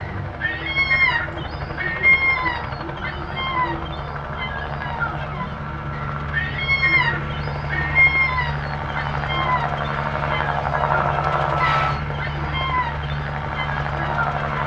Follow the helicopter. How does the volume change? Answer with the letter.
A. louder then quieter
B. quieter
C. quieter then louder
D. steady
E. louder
E.